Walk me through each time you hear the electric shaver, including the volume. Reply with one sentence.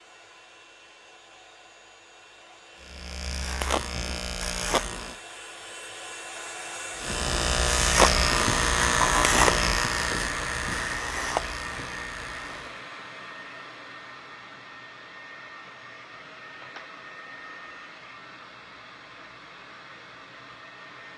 The electric shaver can be heard briefly from 2.8 to 5.2 s; and from 7.0 to 12.8 s, getting quieter.